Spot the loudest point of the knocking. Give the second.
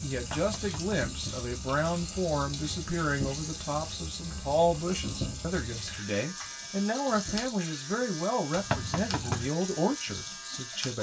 9 s.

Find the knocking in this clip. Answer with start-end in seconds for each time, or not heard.
0.3-1.1, 8.7-9.5.